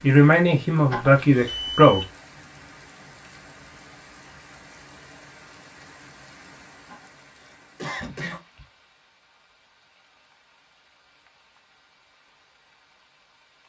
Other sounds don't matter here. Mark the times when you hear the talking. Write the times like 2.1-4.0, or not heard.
0.0-2.0.